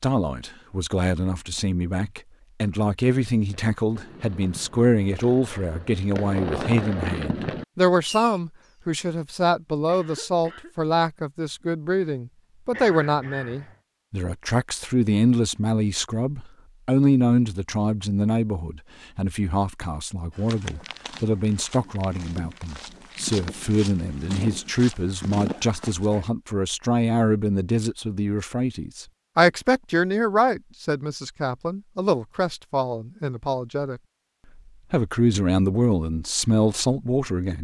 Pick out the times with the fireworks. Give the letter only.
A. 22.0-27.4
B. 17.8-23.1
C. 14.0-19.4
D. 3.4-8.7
D.